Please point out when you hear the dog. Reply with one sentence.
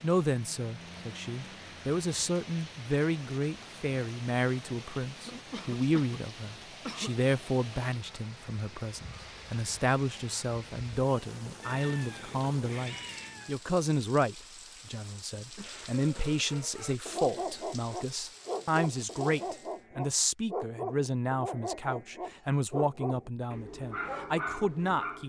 You can hear the dog from 15.9 to 25.2 s.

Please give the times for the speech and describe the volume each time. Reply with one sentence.
You can hear the speech from 0.0 to 25.2 s, at a steady volume.